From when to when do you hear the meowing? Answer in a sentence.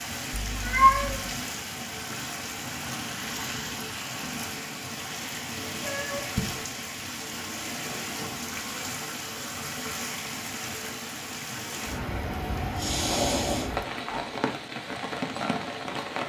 The meowing can be heard from 0.5 to 1.2 s, from 5.8 to 6.5 s and from 12.7 to 14.3 s.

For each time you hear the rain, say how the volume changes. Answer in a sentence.
The rain can be heard from 0.0 to 16.2 s, at a steady volume.